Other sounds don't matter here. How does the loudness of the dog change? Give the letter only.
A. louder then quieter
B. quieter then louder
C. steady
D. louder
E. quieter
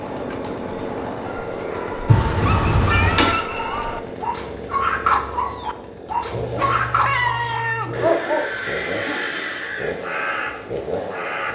D.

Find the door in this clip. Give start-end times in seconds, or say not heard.
2.0-3.3.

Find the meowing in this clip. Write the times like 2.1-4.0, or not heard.
2.9-3.4, 6.3-8.1.